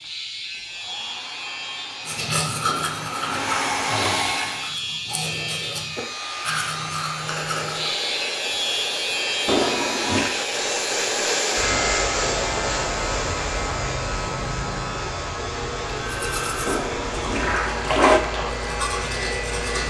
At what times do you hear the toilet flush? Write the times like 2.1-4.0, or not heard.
2.6-4.2, 9.4-10.3, 16.6-18.2.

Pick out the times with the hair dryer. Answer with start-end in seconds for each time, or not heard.
0.0-4.8, 5.8-19.8.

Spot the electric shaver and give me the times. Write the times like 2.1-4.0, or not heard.
0.0-19.8.